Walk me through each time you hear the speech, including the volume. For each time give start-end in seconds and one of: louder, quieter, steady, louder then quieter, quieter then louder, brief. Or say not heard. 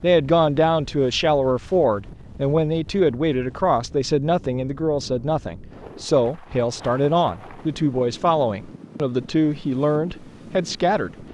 0.0-11.2 steady.